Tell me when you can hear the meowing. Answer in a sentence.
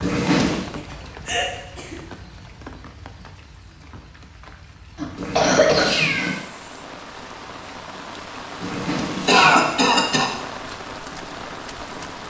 The meowing can be heard from 0.0 to 0.7 s, from 5.2 to 6.5 s and from 8.6 to 9.6 s.